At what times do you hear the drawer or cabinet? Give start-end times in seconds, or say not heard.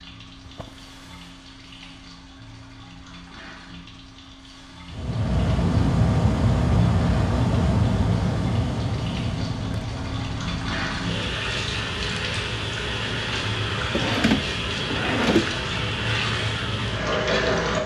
0.5-1.4, 13.9-15.6.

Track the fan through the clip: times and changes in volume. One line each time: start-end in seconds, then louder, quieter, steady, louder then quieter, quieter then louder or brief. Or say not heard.
4.9-17.8 quieter.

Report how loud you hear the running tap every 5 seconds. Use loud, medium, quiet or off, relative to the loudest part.
quiet, quiet, loud, loud.